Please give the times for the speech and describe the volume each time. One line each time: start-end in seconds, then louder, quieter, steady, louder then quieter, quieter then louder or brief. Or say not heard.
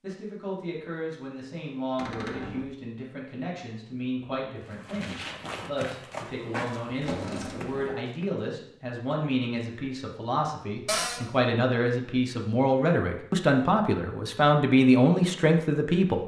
0.0-16.2 louder.